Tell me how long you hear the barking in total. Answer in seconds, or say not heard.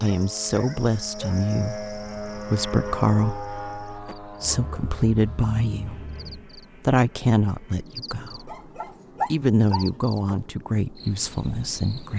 5 s.